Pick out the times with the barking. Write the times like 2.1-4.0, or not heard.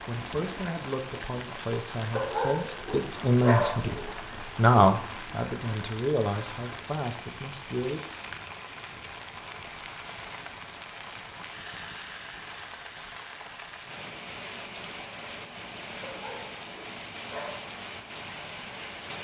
2.1-4.2, 16.0-17.6.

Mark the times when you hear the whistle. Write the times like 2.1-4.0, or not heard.
not heard.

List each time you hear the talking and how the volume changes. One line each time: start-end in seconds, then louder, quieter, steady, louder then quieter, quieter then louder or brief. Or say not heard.
0.1-8.0 louder then quieter.